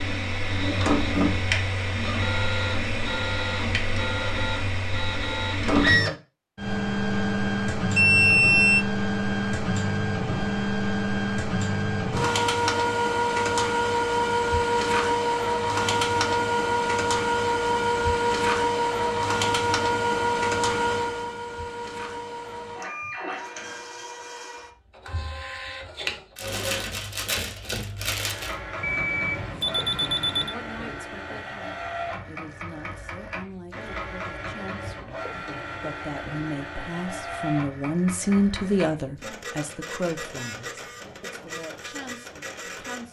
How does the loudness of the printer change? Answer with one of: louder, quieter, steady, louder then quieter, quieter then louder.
quieter.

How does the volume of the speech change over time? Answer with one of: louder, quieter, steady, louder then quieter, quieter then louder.
louder then quieter.